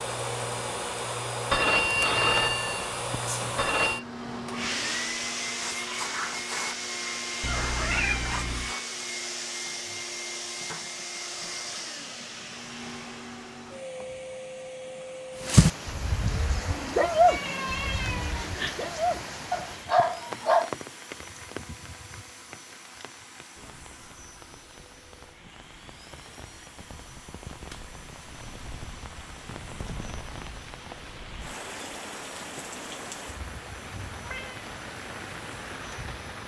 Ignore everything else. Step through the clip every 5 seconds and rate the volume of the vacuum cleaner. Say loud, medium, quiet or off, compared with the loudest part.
loud, loud, medium, medium, quiet, quiet, quiet, quiet.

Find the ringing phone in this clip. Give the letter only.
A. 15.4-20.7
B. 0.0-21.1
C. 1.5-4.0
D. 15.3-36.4
C.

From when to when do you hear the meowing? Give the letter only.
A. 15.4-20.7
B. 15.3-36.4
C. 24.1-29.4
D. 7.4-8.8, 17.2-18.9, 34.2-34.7
D.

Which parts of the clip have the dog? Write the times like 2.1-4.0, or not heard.
15.4-20.7.